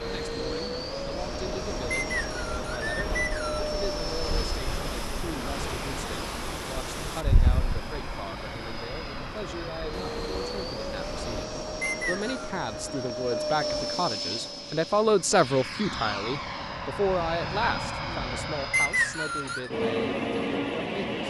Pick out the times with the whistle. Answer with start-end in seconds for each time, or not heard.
1.9-3.7, 11.8-12.5, 18.7-19.7.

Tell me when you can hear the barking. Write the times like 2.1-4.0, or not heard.
not heard.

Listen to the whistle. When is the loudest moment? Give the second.
19 s.